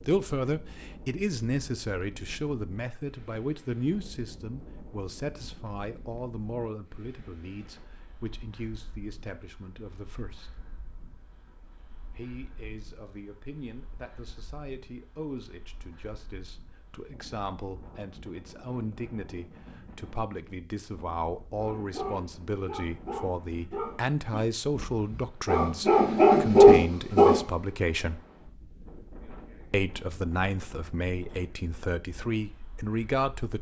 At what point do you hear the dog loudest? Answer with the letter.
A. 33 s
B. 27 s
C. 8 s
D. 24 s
B.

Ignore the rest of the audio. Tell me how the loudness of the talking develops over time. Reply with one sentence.
The volume of the talking goes down, then up.